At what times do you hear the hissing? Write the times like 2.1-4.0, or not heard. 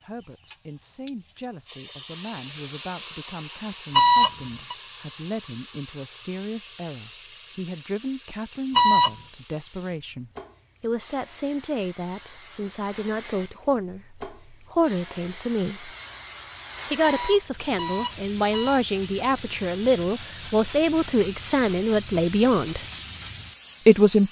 0.0-24.2.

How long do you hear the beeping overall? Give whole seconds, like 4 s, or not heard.
3 s.